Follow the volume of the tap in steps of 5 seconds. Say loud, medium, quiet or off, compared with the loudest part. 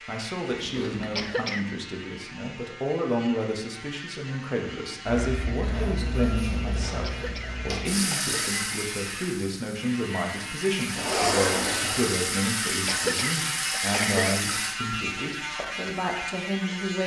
off, loud, loud, off.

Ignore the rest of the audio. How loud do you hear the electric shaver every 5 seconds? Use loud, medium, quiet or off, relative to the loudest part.
medium, medium, loud, loud.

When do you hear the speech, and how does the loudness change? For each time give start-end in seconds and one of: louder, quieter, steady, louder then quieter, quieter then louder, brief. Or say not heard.
0.1-17.0 steady.